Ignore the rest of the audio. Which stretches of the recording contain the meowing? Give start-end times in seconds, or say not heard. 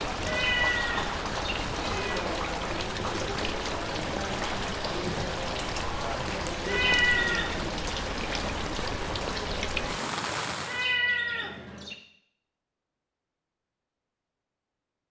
0.2-2.2, 6.7-7.7, 10.7-11.9.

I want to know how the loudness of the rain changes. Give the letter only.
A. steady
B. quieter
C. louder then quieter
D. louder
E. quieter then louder
A.